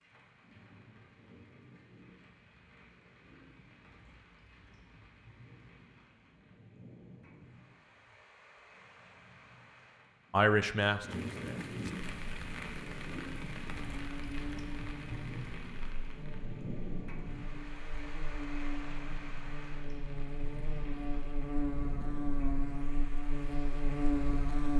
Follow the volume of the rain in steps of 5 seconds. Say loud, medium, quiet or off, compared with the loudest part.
quiet, quiet, loud, loud, medium.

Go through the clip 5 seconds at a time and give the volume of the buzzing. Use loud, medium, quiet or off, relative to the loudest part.
off, off, medium, medium, loud.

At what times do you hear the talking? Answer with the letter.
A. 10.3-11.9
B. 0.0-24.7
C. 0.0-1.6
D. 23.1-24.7
A.